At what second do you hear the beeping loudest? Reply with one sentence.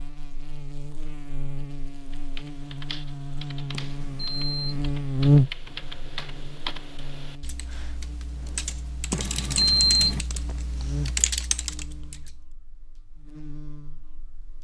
The loudest moment of the beeping is at 10 seconds.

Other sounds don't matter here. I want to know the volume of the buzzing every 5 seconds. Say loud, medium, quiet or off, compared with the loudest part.
medium, loud, quiet.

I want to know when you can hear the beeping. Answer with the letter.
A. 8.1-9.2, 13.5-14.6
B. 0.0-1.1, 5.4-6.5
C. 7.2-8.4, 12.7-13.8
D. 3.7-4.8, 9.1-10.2
D.